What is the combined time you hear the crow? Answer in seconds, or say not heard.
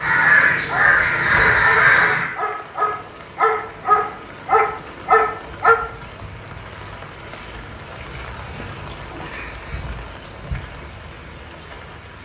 2 s.